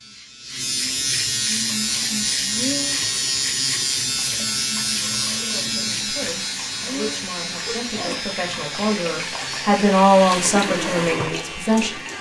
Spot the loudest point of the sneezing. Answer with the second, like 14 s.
3 s.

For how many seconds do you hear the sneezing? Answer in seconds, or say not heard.
2 s.